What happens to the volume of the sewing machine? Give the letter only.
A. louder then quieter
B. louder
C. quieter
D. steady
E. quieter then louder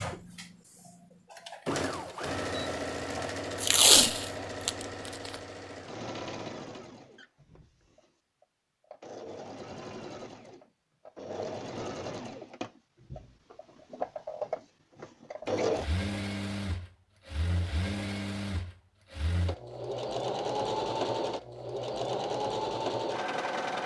E.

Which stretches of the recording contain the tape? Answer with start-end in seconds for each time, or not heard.
3.6-5.3.